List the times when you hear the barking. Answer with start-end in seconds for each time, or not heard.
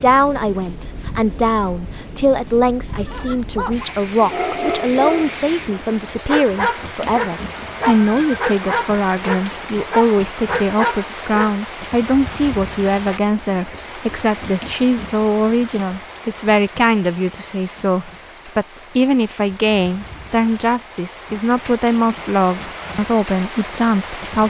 3.0-11.6.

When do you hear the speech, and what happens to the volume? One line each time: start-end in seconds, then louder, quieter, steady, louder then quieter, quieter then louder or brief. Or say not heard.
0.0-24.4 steady.